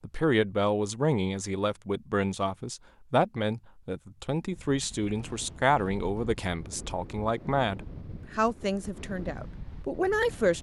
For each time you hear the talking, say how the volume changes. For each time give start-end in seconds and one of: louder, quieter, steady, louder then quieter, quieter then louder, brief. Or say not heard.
0.0-10.5 steady.